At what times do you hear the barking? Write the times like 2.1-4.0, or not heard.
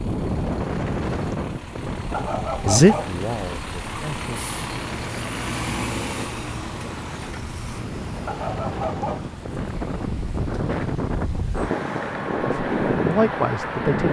2.1-3.1, 8.2-9.3.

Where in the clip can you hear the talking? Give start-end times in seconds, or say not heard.
2.6-4.5, 12.4-14.0.